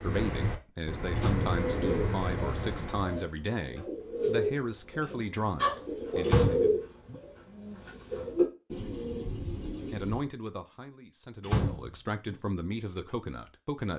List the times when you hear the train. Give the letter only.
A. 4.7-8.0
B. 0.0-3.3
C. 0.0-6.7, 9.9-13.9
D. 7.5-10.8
B.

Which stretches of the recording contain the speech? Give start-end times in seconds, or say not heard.
0.0-6.7, 9.9-13.9.